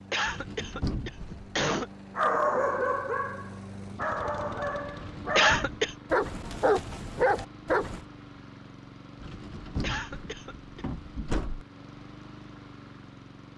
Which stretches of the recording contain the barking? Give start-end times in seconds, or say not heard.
2.1-8.1.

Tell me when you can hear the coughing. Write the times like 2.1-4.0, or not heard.
0.1-1.9, 5.3-6.0, 9.8-10.8.